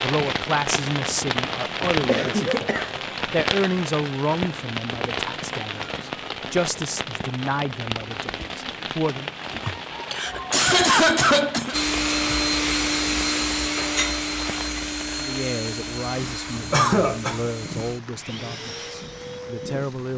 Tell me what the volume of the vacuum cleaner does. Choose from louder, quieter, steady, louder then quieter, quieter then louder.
quieter.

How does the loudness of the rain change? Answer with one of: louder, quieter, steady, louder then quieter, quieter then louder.
quieter.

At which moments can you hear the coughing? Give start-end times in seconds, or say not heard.
2.0-2.9, 9.6-11.8, 16.7-17.5.